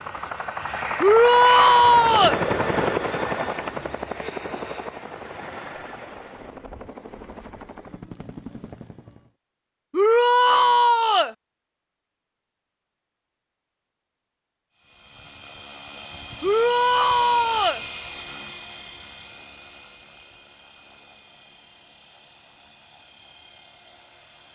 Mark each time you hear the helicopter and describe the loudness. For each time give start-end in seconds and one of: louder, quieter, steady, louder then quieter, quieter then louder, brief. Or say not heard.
0.0-9.3 quieter
14.8-24.5 louder then quieter.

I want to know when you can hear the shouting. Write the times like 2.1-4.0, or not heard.
1.0-2.4, 9.9-11.3, 16.4-17.8.